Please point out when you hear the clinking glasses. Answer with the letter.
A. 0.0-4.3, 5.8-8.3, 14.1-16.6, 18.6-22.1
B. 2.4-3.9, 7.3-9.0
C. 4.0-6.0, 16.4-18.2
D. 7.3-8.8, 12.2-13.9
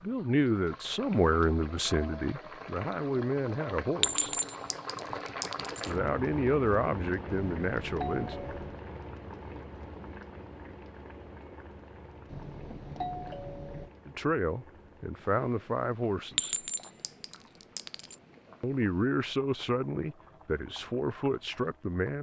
C.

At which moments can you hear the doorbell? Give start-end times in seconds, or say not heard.
7.3-8.8, 12.2-13.9.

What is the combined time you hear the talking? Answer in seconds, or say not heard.
13 s.